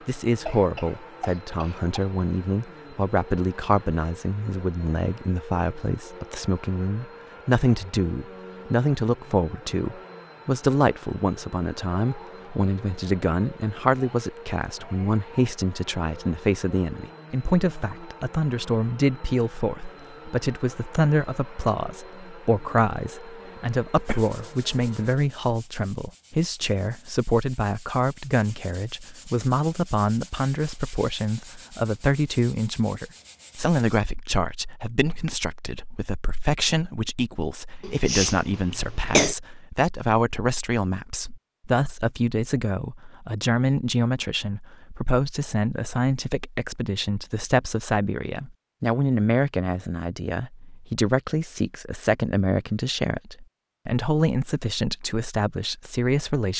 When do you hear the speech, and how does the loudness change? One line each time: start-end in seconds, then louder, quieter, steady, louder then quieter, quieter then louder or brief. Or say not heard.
0.1-56.5 steady.